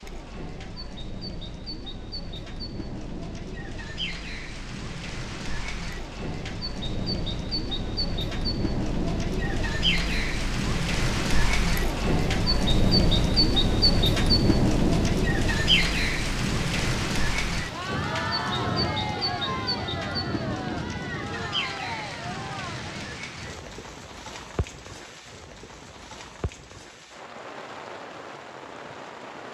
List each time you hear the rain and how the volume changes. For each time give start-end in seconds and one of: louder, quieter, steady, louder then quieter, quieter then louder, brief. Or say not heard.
0.0-29.4 louder then quieter.